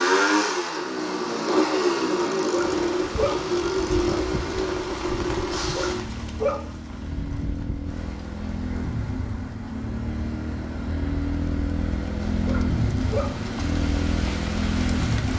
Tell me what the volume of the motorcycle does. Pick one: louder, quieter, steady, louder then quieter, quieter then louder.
quieter then louder.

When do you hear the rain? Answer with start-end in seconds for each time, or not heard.
2.5-15.3.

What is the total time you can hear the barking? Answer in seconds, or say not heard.
3 s.